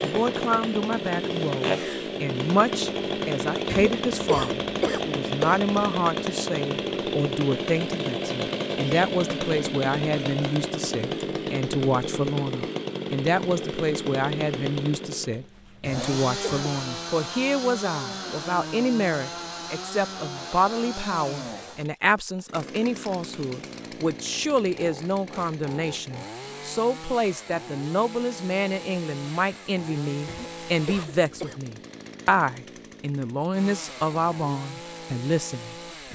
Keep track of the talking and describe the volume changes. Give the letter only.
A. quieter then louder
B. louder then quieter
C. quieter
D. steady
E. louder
D.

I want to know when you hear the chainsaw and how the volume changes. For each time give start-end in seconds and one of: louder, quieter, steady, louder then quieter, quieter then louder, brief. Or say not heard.
0.0-36.1 quieter.